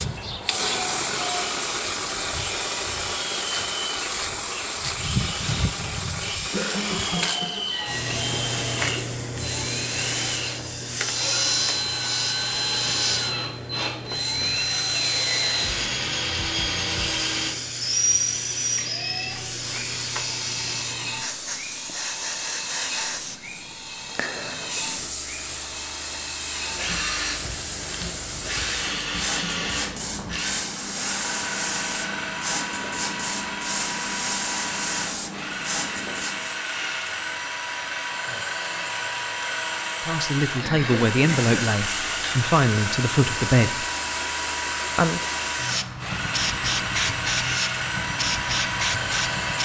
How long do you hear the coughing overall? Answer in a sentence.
You can hear the coughing for 2 seconds altogether.